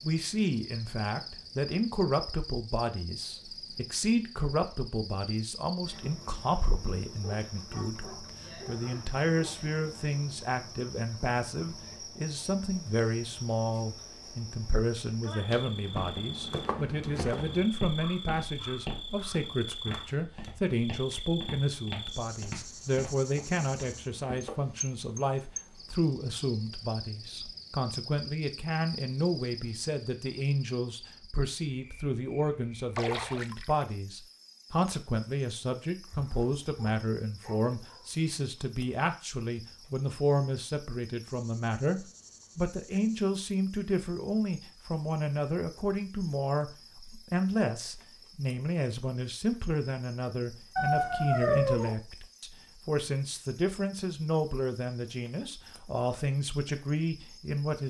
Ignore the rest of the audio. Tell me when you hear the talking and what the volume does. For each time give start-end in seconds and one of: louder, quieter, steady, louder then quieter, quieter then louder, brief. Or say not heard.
0.0-57.8 steady.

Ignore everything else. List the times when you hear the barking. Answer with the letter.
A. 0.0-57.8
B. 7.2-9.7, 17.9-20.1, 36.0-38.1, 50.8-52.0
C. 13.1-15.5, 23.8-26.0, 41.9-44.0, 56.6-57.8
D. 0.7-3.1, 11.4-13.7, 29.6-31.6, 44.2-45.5
B.